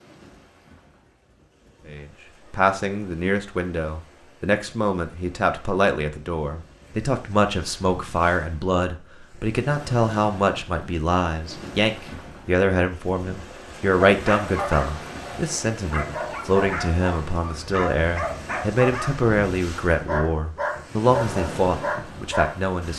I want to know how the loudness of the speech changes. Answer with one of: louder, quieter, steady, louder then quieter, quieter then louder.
steady.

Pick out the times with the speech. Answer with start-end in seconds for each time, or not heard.
1.9-22.9.